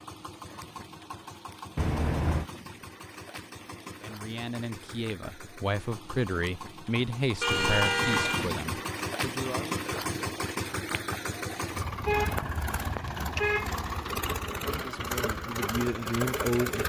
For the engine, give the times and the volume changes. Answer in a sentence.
The engine can be heard from 0.0 to 16.8 s, getting louder.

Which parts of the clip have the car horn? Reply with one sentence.
You can hear the car horn from 1.8 to 2.5 s, from 7.4 to 8.6 s and from 12.0 to 13.8 s.